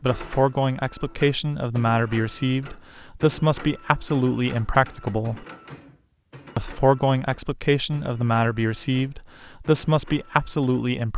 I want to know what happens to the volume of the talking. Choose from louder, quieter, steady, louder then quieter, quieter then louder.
steady.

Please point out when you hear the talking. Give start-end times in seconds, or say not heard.
0.0-5.5, 6.5-11.1.